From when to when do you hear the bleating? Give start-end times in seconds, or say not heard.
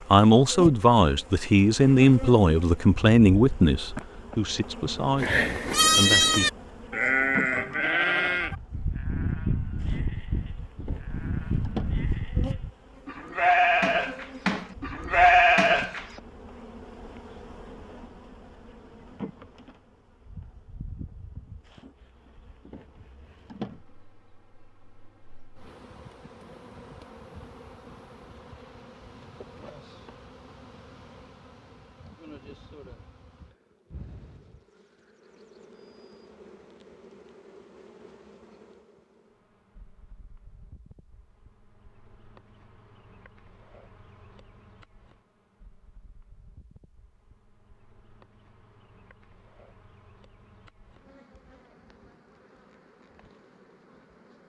5.2-16.1.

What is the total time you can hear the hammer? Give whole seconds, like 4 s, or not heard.
not heard.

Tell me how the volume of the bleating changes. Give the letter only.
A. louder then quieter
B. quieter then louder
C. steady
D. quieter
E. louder
B.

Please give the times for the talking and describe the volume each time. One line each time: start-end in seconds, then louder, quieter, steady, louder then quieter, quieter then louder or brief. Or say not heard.
0.1-6.5 quieter.